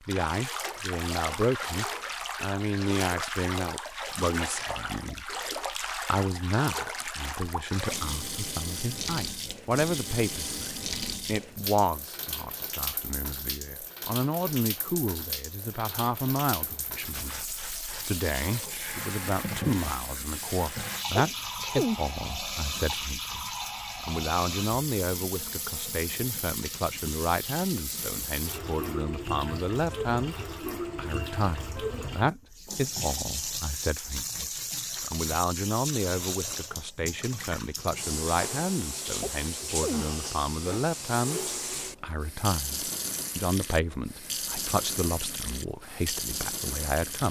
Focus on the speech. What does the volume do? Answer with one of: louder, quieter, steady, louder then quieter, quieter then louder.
steady.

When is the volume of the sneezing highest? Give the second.
22 s.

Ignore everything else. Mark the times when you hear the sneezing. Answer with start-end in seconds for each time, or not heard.
21.1-22.0, 39.2-40.0.